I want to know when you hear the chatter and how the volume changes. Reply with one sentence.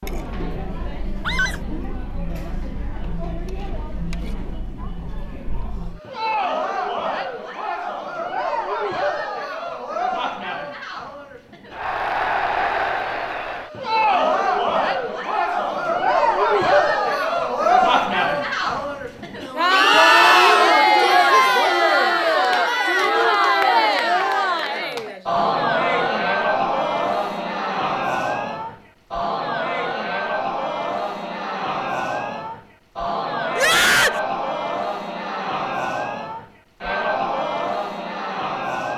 The chatter can be heard from 0.0 to 38.9 s, getting louder then quieter.